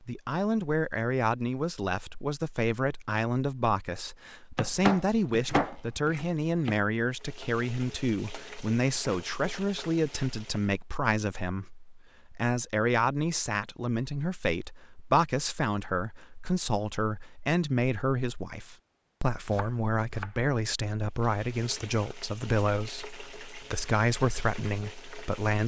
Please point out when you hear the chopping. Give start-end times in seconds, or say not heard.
4.5-6.8, 19.5-20.3.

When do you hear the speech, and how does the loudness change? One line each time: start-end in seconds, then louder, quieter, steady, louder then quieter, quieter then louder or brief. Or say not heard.
0.0-25.6 steady.